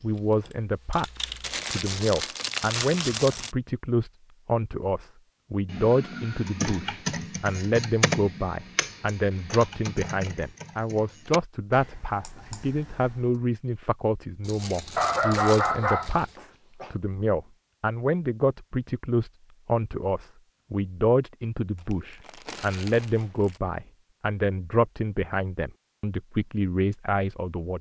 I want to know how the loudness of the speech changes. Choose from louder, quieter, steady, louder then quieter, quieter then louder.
steady.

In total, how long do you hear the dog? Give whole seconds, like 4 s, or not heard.
2 s.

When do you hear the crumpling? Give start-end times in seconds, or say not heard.
1.4-3.5, 14.4-16.4, 21.8-23.6.